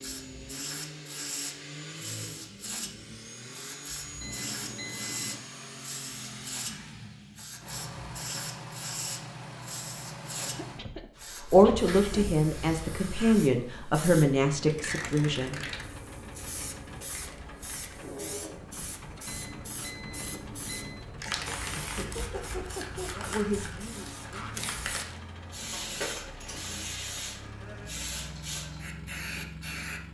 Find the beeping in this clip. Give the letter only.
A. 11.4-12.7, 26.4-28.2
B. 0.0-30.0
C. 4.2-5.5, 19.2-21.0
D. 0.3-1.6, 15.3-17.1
C.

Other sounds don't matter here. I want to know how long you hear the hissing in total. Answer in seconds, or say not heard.
30 s.